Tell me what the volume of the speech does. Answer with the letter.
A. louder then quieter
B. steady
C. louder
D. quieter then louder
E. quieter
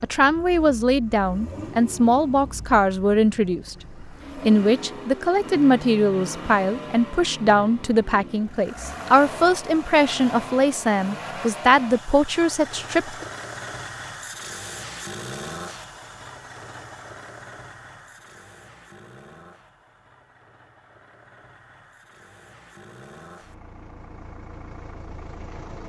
B.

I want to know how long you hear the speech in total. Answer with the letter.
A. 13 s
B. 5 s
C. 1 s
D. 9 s
A.